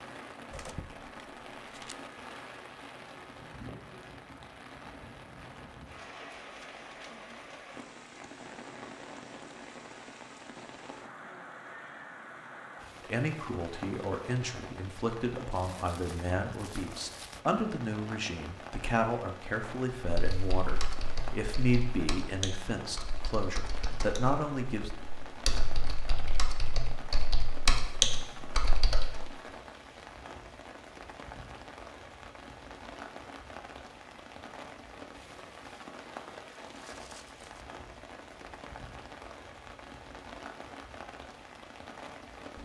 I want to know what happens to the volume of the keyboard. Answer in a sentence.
The loudness of the keyboard goes up.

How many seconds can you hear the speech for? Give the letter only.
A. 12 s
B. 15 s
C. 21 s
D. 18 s
A.